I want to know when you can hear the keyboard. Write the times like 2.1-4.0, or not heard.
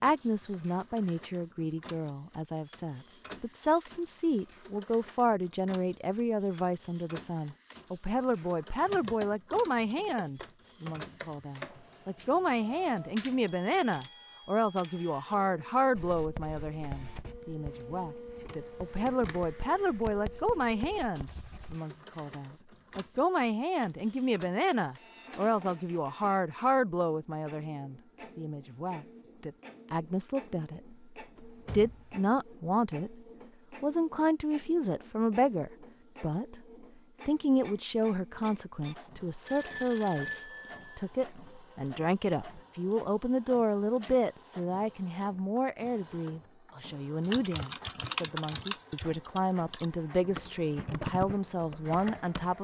8.8-14.1, 47.2-52.5.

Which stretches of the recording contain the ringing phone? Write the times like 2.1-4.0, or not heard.
39.5-41.0.